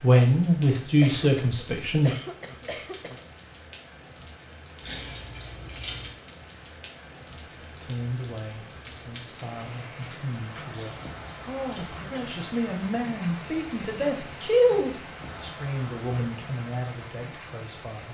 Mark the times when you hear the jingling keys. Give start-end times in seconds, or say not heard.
4.8-6.1, 10.7-12.0.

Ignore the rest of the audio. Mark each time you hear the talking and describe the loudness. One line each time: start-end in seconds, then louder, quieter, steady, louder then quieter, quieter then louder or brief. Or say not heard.
0.0-2.1 brief
7.7-18.0 louder then quieter.